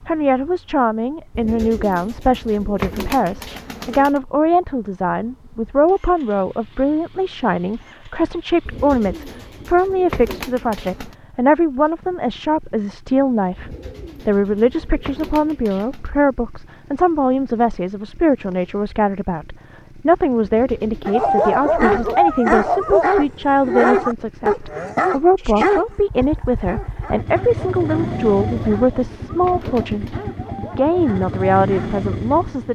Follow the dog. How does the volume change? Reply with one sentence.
The loudness of the dog goes down.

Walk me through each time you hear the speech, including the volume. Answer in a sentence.
You can hear the speech from 0.1 to 32.6 s, at a steady volume.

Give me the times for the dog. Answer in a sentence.
The dog can be heard from 21.1 to 32.0 s.